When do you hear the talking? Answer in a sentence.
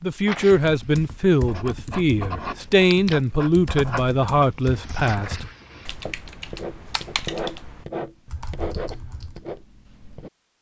The talking can be heard from 0.0 to 5.5 s.